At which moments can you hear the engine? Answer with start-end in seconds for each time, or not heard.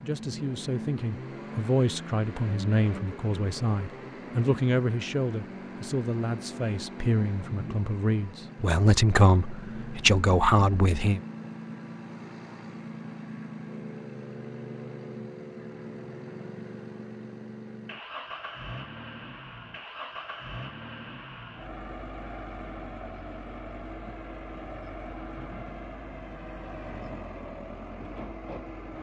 0.0-28.9.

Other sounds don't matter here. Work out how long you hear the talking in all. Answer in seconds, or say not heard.
11 s.